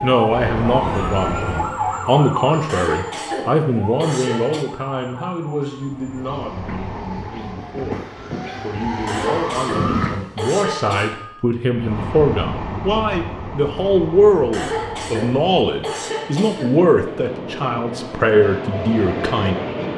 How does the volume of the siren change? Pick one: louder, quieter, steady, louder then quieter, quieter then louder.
quieter then louder.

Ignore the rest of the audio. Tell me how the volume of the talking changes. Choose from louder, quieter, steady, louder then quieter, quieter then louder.
quieter then louder.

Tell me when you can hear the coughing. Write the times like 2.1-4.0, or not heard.
2.6-4.7, 9.1-11.2, 14.5-16.9.